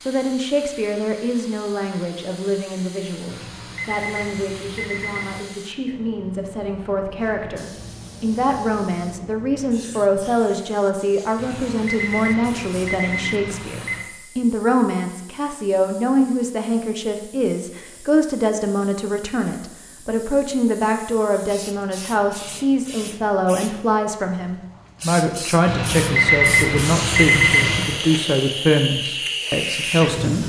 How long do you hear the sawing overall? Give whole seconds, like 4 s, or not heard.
not heard.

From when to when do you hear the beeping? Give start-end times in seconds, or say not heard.
3.2-5.5, 11.3-14.1, 25.6-27.9.